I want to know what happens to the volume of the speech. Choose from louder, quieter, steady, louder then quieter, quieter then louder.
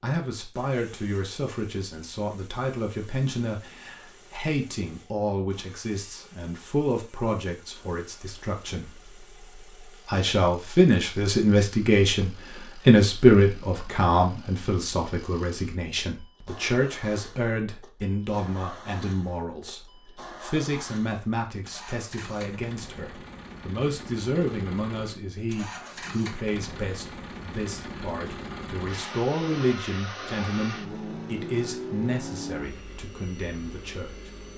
louder then quieter.